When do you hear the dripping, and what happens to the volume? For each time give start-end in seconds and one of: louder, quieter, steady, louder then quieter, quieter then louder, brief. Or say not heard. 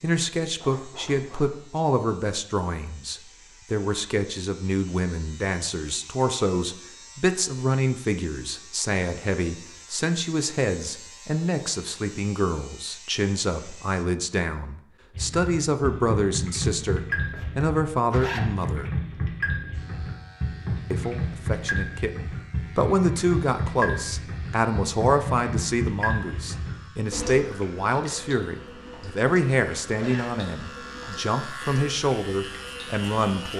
15.1-33.5 quieter.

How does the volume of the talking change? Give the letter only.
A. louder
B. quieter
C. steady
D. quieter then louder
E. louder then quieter
C.